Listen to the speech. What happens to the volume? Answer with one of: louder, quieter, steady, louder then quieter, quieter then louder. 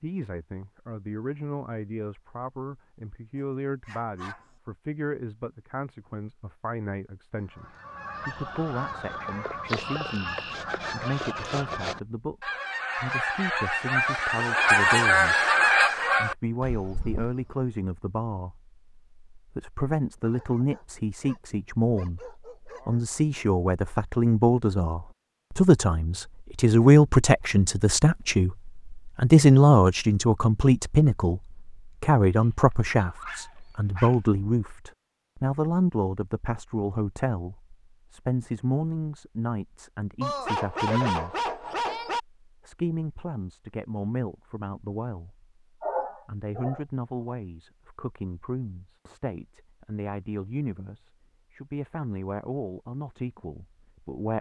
louder then quieter.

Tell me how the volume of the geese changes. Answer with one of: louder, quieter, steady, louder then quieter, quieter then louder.
louder.